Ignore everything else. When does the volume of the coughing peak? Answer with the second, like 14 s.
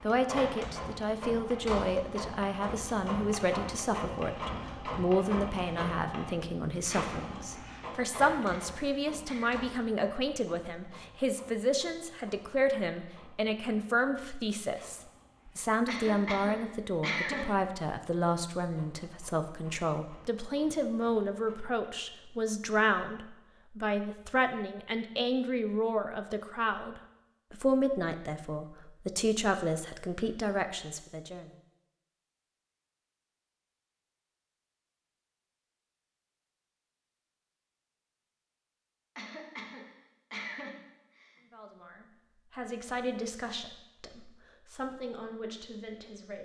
17 s.